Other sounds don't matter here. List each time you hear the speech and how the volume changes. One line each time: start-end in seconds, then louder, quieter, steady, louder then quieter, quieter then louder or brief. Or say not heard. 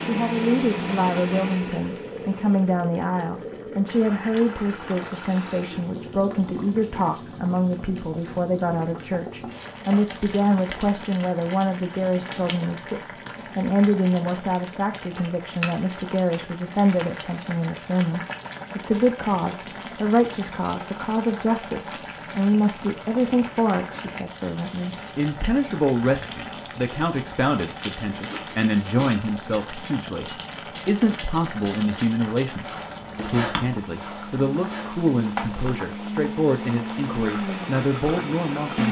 0.1-38.8 steady.